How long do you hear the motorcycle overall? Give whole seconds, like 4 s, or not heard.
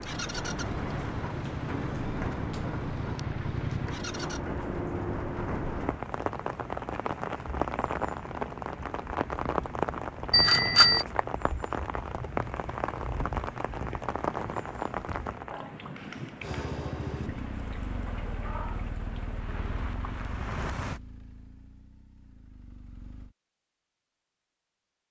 11 s.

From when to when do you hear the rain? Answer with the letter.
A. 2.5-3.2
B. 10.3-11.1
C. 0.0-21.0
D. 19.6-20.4
C.